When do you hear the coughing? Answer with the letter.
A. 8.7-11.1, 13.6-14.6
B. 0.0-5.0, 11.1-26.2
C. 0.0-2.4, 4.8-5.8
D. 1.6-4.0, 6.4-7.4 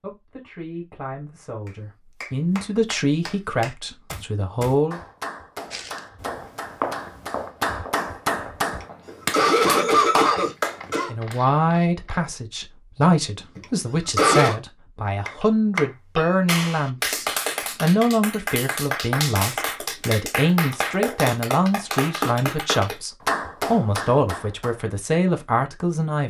A.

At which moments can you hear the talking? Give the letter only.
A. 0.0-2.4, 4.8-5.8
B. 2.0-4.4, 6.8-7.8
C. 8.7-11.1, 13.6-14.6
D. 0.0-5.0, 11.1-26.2
D.